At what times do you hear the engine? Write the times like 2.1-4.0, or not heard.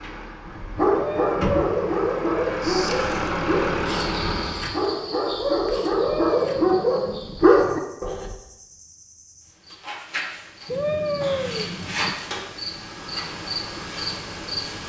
0.0-4.8, 12.8-14.8.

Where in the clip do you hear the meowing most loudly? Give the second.
11 s.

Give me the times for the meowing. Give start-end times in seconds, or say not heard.
0.9-2.4, 5.9-7.4, 10.7-12.2.